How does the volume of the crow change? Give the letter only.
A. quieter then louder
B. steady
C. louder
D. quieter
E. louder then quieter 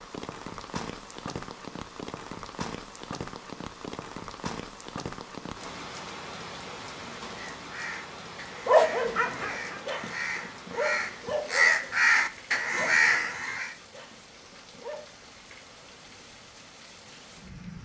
C.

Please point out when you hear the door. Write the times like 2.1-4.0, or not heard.
not heard.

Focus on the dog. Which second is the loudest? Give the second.
9 s.